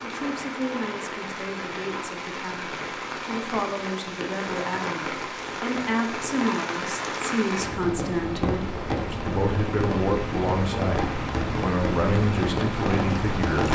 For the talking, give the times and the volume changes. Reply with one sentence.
You can hear the talking from 0.0 to 13.6 s, getting louder.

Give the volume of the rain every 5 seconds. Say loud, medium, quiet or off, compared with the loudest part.
medium, loud, loud.